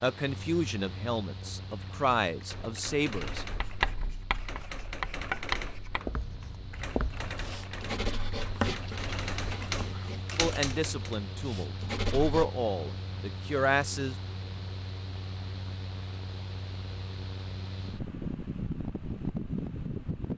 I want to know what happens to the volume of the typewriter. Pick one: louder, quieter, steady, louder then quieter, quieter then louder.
louder.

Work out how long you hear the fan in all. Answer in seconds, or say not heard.
20 s.